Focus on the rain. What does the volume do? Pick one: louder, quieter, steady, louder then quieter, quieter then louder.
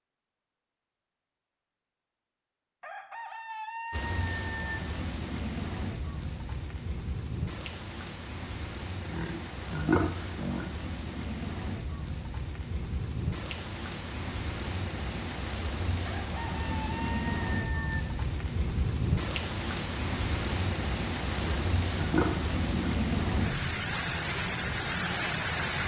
louder.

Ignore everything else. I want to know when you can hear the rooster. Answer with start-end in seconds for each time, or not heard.
2.8-4.8, 16.1-18.1.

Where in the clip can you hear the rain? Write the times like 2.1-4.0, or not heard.
3.9-25.8.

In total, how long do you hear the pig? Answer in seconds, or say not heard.
3 s.